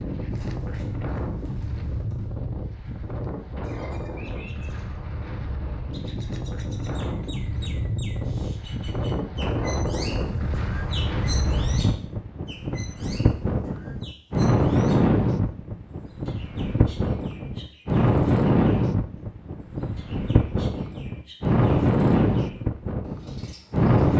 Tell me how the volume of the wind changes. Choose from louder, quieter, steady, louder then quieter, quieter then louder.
louder.